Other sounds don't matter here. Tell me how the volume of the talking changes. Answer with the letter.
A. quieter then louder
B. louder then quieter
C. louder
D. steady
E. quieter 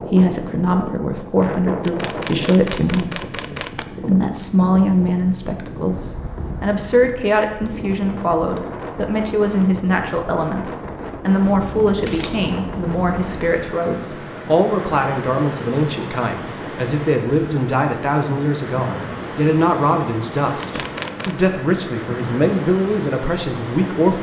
D.